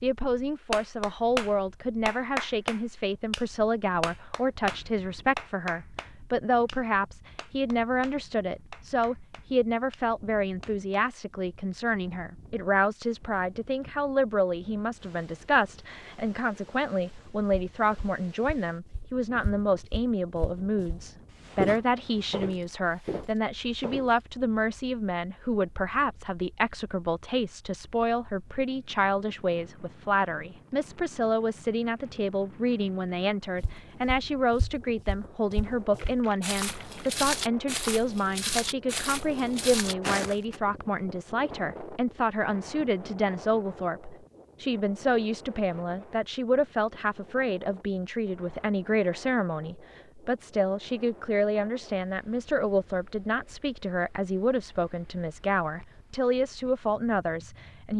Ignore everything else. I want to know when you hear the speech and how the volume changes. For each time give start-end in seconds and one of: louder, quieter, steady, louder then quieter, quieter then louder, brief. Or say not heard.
0.0-57.9 steady.